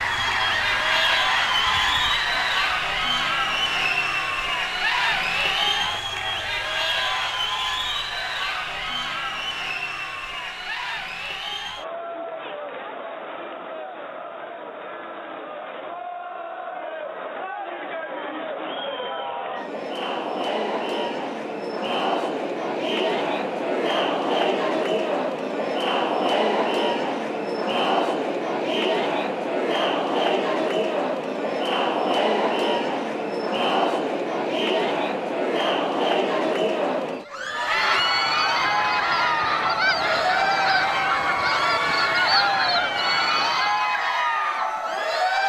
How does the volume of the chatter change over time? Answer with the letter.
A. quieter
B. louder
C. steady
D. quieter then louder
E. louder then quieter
D.